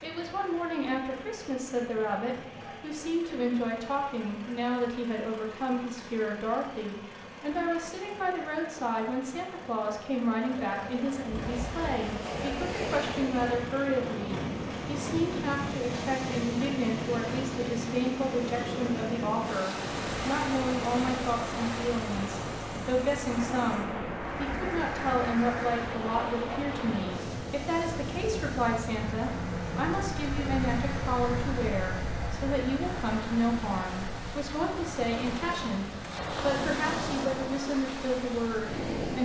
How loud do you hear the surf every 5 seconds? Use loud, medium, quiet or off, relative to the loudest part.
off, off, loud, loud, loud, loud, medium, loud.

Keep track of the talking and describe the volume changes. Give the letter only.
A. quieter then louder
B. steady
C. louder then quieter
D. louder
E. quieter
B.